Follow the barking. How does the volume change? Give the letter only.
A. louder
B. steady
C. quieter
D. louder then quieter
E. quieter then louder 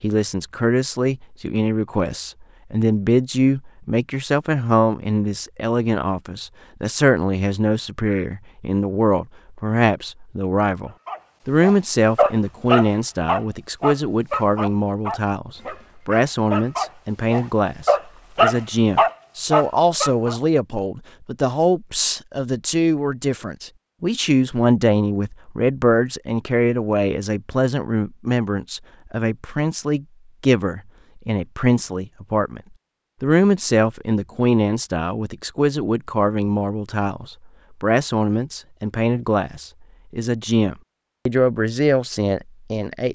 E.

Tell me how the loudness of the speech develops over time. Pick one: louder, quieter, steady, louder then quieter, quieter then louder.
steady.